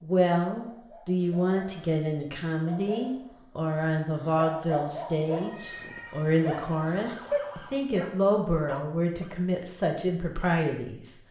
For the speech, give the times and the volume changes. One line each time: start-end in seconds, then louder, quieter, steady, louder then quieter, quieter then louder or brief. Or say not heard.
0.0-11.2 steady.